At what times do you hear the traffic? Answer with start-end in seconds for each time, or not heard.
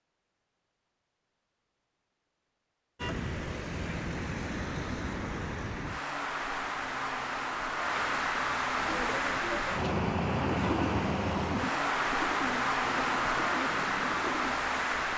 3.0-15.1.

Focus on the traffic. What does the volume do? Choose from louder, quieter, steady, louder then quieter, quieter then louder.
louder.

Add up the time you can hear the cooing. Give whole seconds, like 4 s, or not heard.
6 s.